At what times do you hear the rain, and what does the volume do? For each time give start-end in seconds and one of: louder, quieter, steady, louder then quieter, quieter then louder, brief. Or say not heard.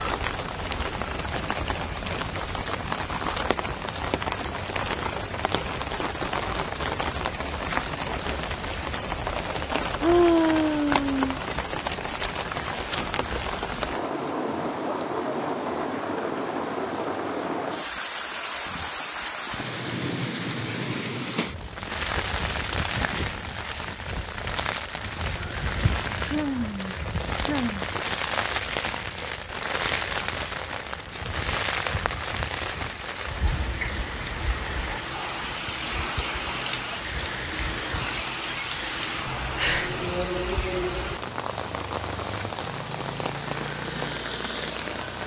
0.0-45.2 steady.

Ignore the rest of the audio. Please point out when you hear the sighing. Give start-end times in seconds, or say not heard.
10.0-11.4, 26.1-27.9, 38.9-40.0.